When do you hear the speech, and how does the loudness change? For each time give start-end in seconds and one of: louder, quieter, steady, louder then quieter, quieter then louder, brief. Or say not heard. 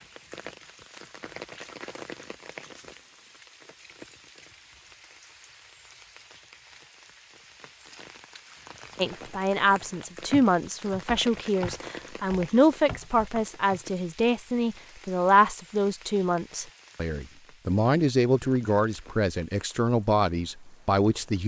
8.9-21.4 steady.